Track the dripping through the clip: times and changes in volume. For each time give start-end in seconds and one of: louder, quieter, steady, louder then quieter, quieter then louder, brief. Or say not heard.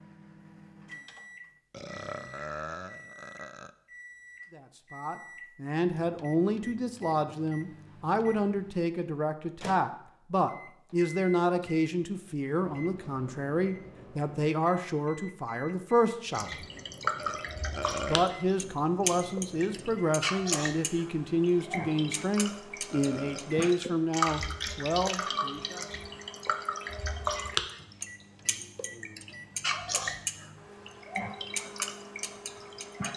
16.4-33.1 steady.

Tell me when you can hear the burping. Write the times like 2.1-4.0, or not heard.
1.7-3.7, 17.1-18.3, 22.4-23.6.